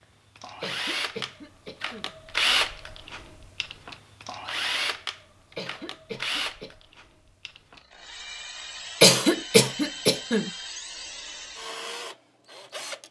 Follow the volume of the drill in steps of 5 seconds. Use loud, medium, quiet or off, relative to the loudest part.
loud, medium, medium.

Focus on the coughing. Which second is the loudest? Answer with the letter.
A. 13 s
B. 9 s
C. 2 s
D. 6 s
B.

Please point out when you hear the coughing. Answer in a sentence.
You can hear the coughing from 0.6 to 2.1 s, from 5.5 to 6.8 s and from 9.0 to 10.5 s.